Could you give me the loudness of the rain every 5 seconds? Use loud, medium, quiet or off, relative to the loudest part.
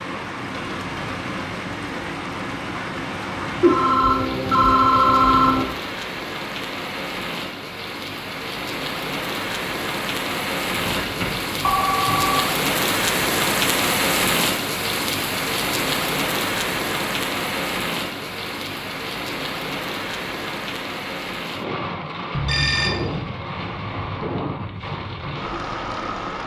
medium, medium, loud, loud, medium, medium.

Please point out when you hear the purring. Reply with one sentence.
You can't hear the purring here.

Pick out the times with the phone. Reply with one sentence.
The phone can be heard from 3.6 to 5.7 s, from 10.8 to 12.4 s and from 22.4 to 23.2 s.